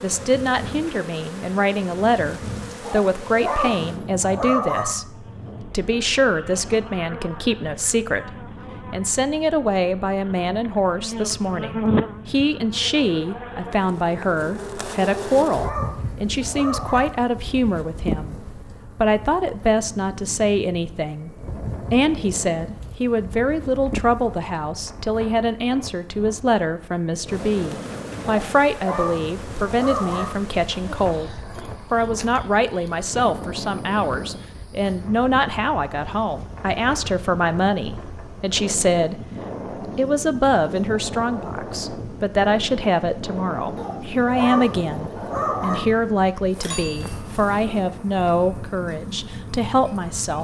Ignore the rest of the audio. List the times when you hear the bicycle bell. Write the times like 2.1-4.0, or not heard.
46.5-47.4.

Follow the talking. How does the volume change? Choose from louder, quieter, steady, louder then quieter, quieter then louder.
steady.